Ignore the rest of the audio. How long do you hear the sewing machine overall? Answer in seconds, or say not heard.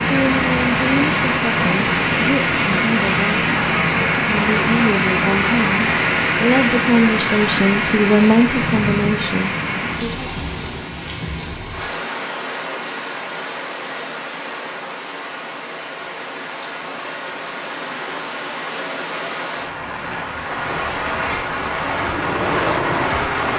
2 s.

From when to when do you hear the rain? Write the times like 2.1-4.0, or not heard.
0.0-23.5.